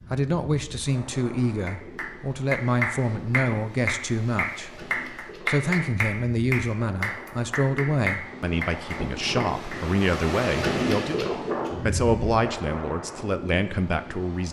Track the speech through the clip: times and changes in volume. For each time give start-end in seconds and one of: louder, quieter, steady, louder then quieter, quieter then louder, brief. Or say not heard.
0.1-14.4 steady.